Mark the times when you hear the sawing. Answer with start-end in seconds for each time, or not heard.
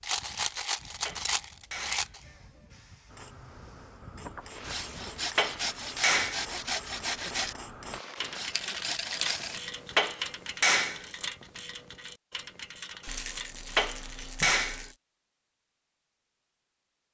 4.5-9.6.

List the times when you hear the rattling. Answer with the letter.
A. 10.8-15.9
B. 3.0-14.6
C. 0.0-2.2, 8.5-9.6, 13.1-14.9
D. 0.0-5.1
C.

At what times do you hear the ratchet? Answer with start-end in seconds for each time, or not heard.
3.0-14.6.